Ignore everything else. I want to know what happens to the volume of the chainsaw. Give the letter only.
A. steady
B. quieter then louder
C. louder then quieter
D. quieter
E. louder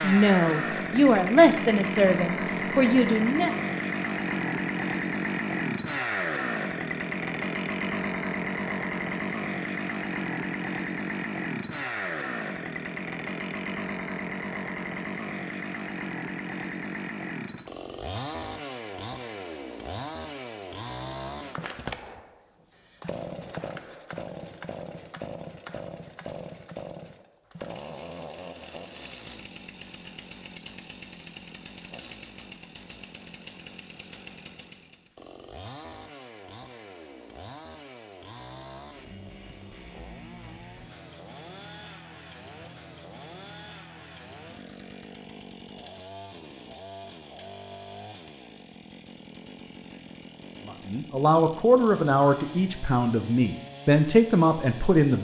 D.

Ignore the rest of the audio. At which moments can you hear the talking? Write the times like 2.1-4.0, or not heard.
0.0-3.5, 50.6-55.1.